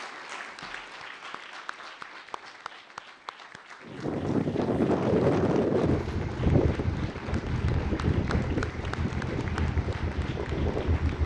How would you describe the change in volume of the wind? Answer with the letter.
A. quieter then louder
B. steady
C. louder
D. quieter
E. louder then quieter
D.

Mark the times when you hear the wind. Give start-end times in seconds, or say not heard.
3.9-11.2.